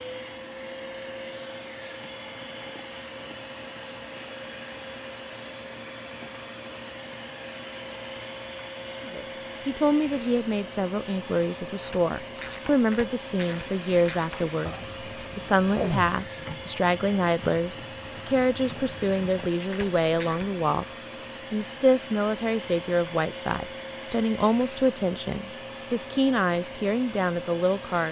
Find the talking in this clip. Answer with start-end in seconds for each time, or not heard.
9.1-28.0.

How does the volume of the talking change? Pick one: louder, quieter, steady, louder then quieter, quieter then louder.
steady.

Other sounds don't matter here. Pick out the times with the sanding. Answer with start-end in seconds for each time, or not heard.
not heard.